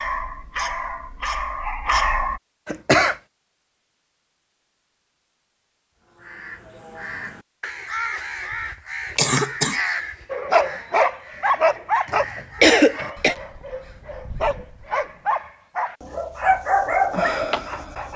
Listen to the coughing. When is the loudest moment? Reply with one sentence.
The volume of the coughing peaks at 13 seconds.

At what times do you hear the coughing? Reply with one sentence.
You can hear the coughing from 2.6 to 3.1 s, from 9.2 to 9.8 s and from 12.6 to 13.3 s.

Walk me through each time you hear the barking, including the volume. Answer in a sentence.
You can hear the barking briefly from 0.0 to 2.4 s; and from 10.3 to 18.1 s, getting quieter then louder.